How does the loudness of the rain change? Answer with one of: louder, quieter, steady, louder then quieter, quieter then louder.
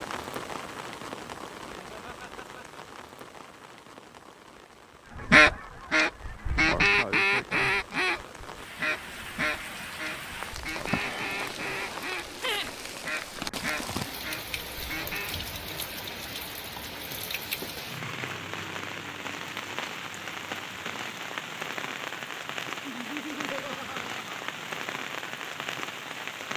louder.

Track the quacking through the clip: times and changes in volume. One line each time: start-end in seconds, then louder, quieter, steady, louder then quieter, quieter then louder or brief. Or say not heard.
5.2-15.4 quieter.